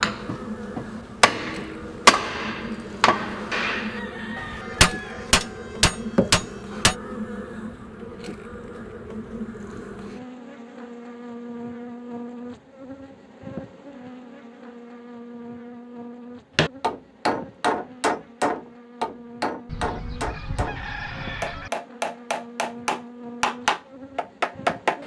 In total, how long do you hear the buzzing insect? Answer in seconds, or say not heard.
25 s.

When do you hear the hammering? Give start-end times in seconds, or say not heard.
0.0-7.0, 16.6-25.0.